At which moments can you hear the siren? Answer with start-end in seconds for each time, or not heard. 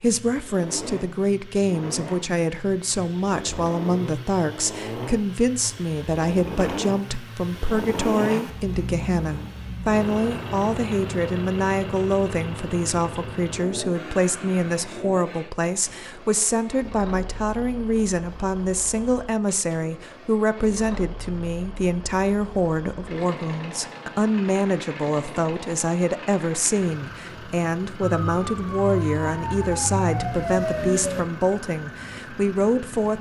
28.0-31.2.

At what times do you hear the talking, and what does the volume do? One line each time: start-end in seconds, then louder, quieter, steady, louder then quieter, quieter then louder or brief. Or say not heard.
0.0-33.1 steady.